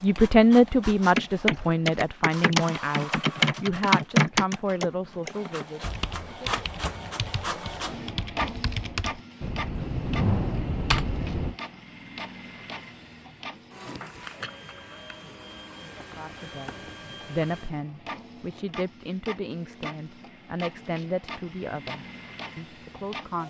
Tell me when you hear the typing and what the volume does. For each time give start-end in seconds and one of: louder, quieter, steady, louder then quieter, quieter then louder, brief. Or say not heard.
1.1-11.6 quieter then louder.